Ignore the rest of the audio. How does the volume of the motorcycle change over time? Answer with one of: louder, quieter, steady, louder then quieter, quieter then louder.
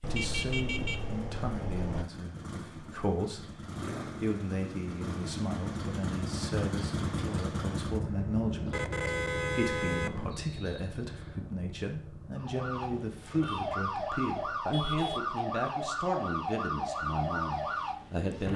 louder then quieter.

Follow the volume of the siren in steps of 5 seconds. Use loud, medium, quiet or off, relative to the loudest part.
off, off, loud, loud.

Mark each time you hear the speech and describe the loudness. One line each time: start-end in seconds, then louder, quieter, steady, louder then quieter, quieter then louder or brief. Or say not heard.
0.1-18.5 steady.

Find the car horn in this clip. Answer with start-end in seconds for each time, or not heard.
0.0-2.0, 8.7-10.4, 14.6-15.3.